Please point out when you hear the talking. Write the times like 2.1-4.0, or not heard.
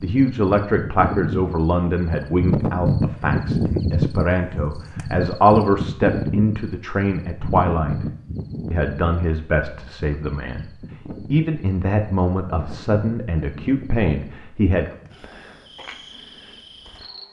0.0-8.1, 8.7-10.7, 11.3-14.9.